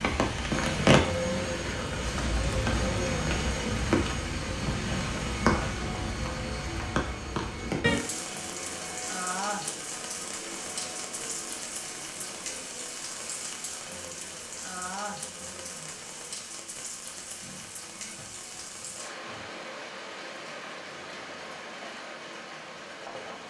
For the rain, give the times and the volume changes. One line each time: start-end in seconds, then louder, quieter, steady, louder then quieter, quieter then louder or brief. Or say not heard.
0.0-23.4 quieter.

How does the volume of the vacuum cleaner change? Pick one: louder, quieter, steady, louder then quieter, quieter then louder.
quieter.